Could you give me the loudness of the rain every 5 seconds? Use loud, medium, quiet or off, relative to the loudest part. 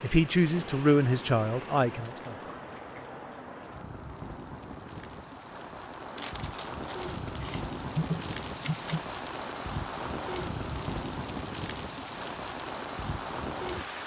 medium, loud, loud.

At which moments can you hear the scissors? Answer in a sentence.
You can hear the scissors from 7.4 to 9.0 s.